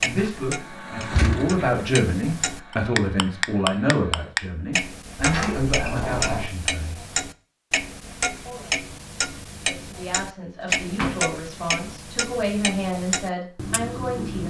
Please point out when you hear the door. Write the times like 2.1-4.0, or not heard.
1.1-1.6, 5.2-6.5, 10.7-11.2.